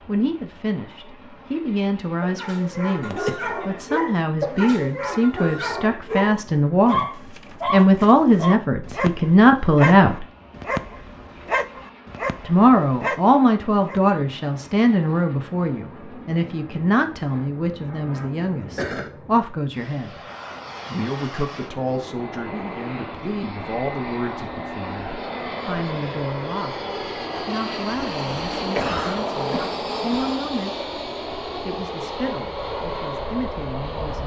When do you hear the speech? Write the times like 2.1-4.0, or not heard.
0.1-7.0, 7.7-10.2, 12.4-20.2, 20.9-30.8, 31.6-34.2.